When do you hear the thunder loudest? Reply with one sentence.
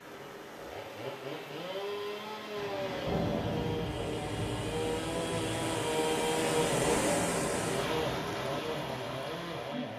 The volume of the thunder peaks at 3 seconds.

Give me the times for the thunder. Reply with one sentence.
The thunder can be heard from 2.5 to 6.0 s.